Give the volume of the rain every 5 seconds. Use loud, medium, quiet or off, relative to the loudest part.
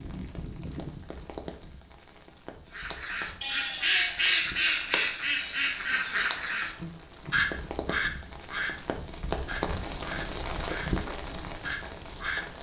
medium, loud, loud.